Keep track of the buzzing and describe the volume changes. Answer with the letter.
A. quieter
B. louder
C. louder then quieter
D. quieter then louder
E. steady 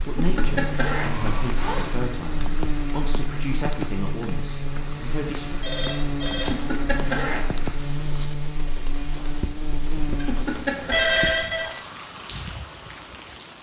E.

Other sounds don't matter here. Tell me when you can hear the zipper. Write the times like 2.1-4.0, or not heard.
0.1-1.9, 6.5-7.5, 10.2-11.1.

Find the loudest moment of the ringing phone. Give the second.
11 s.